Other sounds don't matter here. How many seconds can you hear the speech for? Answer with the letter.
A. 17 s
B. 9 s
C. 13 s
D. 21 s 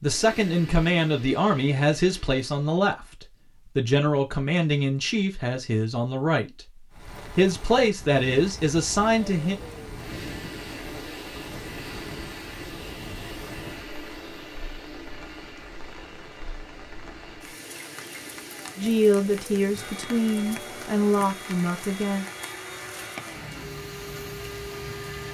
C.